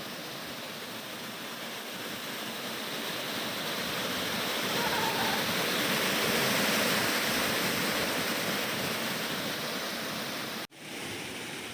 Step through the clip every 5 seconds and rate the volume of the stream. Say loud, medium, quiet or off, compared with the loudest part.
medium, loud, medium.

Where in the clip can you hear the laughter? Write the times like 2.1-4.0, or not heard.
4.6-5.5.